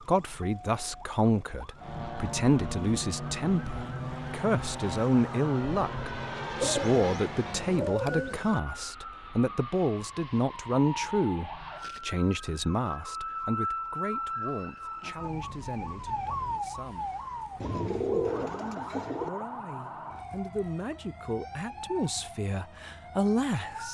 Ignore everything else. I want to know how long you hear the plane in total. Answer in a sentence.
The plane can be heard for 6 seconds in total.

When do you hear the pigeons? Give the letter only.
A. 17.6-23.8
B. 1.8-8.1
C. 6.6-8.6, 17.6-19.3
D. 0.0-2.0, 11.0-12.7
C.